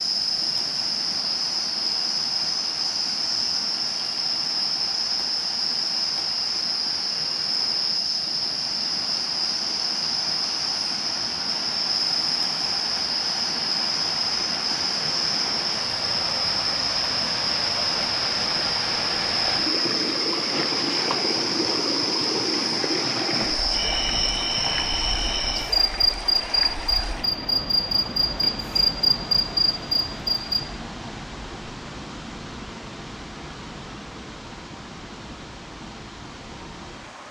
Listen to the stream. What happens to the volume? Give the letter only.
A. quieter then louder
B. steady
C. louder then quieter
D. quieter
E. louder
C.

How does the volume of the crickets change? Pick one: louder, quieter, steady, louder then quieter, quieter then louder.
steady.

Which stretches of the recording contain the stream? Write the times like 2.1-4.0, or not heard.
0.0-37.2.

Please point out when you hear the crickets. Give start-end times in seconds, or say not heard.
0.0-30.6.